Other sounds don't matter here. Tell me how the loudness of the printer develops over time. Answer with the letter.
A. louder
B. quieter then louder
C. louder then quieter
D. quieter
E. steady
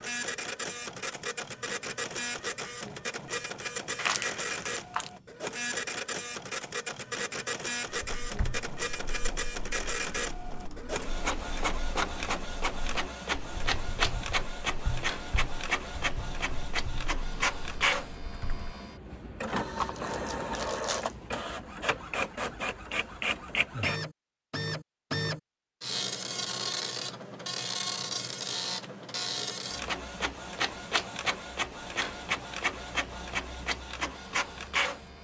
E.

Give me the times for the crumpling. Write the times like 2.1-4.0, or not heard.
4.0-5.1, 19.8-21.1.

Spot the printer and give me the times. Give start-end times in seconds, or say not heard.
0.0-35.2.